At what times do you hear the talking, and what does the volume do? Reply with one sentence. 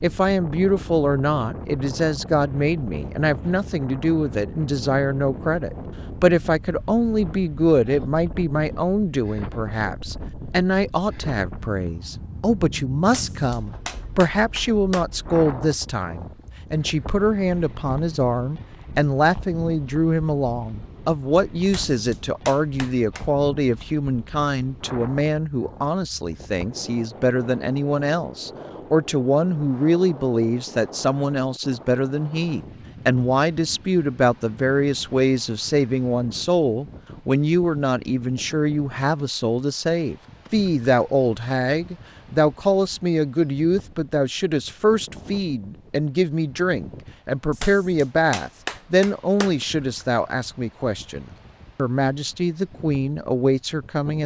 You can hear the talking from 0.0 to 54.2 s, at a steady volume.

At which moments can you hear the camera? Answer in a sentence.
You can't hear the camera here.